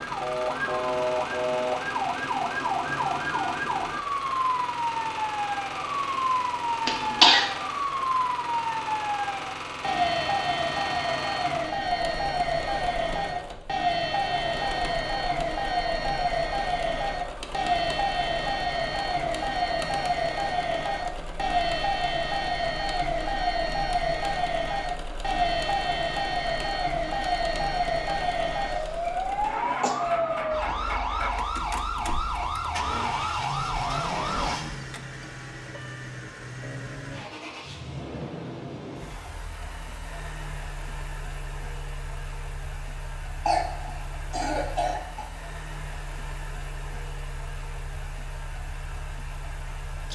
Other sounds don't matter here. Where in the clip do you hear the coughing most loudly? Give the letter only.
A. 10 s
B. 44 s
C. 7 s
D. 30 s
C.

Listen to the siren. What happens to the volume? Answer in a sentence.
The loudness of the siren stays about the same.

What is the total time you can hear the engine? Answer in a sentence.
The engine can be heard for 50 seconds in total.